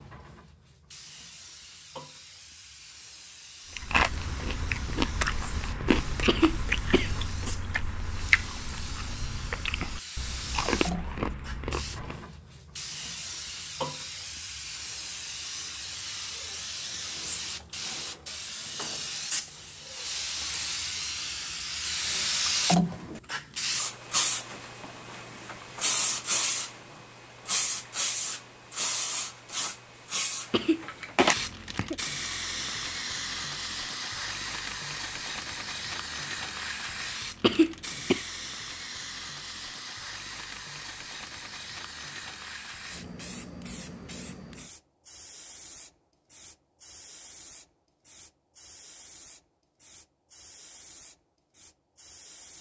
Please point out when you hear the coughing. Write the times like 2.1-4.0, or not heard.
6.2-7.2, 30.5-31.9, 37.4-38.2.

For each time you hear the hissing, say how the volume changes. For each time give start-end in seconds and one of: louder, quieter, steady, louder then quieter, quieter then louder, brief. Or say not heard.
0.0-52.5 louder then quieter.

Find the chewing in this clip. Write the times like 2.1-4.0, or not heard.
3.8-12.2.